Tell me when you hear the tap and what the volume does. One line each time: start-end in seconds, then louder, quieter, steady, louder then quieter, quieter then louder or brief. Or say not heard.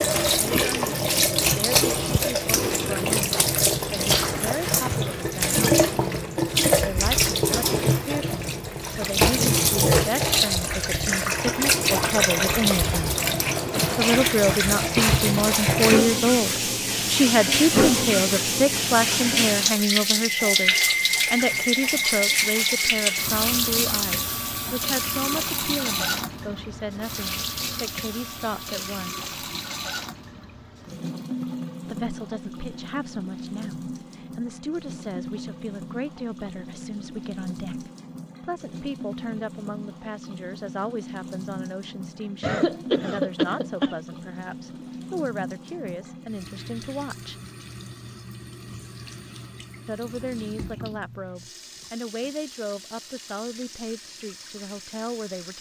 0.0-55.5 quieter.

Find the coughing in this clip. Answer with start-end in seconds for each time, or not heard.
42.4-44.0.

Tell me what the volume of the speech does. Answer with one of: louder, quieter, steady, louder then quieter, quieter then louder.
louder then quieter.